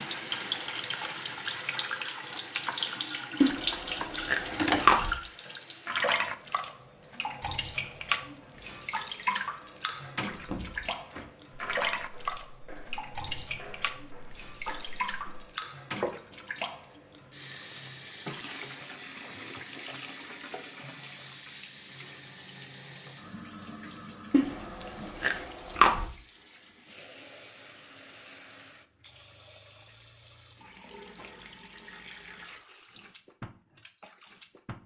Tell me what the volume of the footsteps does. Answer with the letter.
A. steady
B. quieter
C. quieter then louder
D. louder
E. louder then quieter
B.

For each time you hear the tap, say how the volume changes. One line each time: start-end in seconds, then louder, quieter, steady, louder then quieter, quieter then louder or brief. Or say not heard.
0.0-34.8 quieter.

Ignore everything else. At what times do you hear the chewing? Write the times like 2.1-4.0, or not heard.
3.4-5.2, 24.3-26.1.